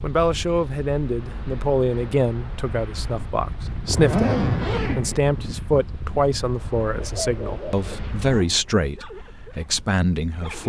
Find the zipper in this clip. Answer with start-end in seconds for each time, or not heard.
3.0-5.2.